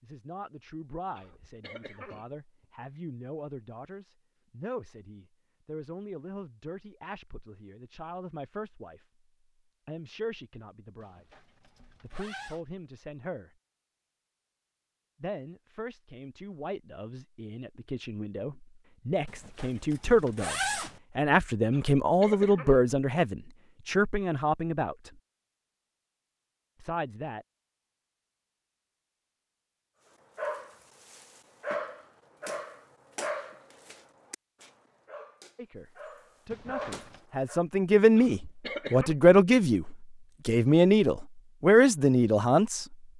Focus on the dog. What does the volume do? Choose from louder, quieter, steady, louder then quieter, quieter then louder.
quieter then louder.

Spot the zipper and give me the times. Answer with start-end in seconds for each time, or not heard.
11.0-12.6, 19.2-21.0, 36.5-37.2.